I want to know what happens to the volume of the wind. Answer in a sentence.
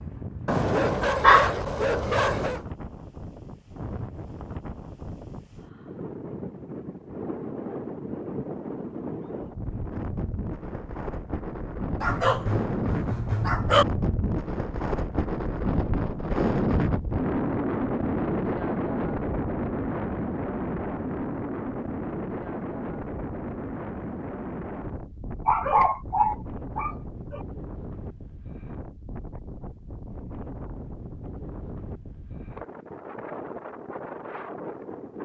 The loudness of the wind goes up, then down.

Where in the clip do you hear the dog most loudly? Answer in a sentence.
The volume of the dog peaks at 1 second.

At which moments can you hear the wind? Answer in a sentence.
The wind can be heard from 0.0 to 35.1 s.